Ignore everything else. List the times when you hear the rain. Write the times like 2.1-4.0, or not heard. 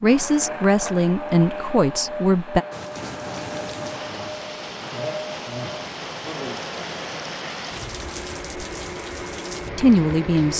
2.7-10.5.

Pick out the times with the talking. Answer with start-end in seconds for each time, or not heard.
0.0-2.6, 9.8-10.5.